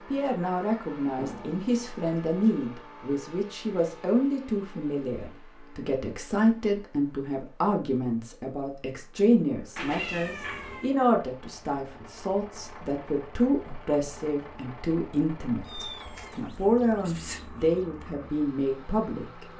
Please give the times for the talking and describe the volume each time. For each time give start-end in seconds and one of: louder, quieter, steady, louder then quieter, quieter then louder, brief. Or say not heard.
0.1-19.4 steady.